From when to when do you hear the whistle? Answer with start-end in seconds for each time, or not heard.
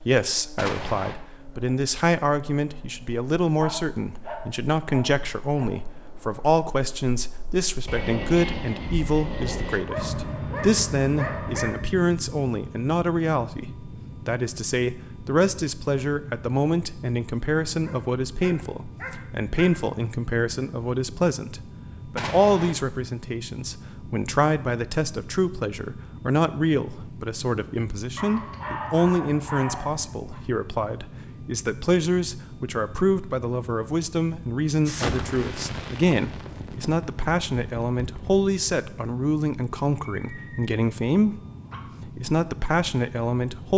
not heard.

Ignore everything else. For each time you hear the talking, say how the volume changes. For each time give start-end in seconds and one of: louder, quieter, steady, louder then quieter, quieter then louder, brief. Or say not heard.
0.0-41.4 steady
42.0-43.7 brief.